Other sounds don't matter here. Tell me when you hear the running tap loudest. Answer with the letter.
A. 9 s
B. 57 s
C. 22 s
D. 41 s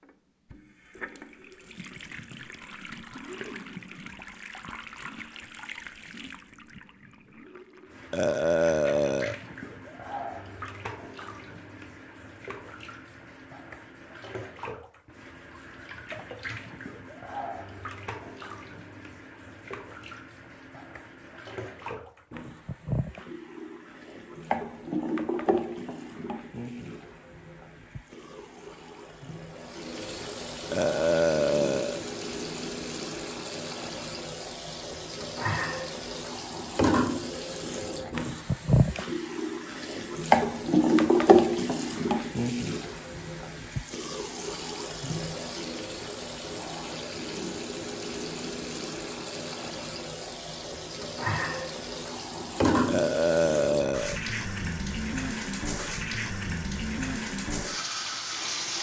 D.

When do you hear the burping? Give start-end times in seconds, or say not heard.
8.1-9.3, 30.7-32.0, 52.9-54.2.